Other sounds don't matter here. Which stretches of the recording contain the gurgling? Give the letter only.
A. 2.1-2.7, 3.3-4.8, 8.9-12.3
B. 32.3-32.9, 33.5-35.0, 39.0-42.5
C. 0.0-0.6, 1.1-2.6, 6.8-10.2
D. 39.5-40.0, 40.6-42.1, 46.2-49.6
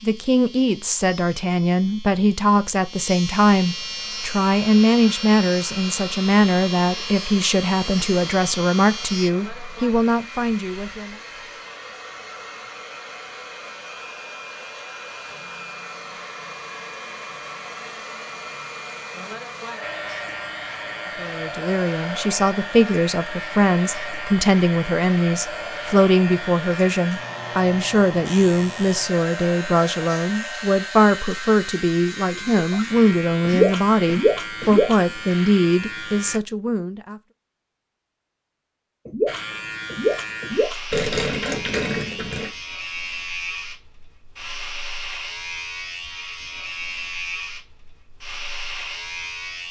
B.